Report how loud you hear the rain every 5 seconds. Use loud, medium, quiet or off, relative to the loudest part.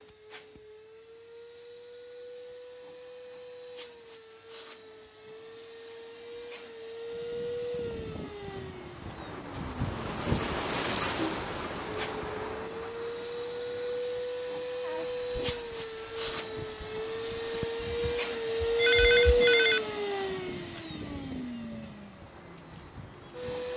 off, medium, loud, quiet, quiet.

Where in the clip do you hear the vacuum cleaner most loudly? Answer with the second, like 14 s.
19 s.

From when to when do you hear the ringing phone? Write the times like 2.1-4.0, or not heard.
17.8-19.8.